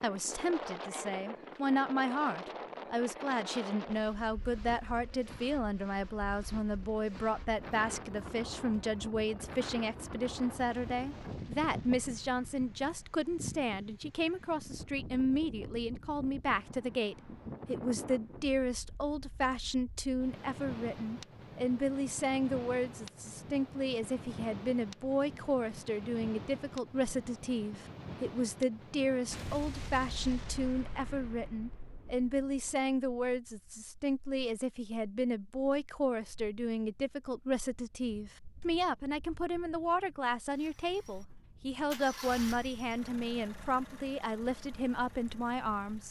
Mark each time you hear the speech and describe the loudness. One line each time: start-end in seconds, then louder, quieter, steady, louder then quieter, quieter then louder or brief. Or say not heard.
0.0-46.0 steady.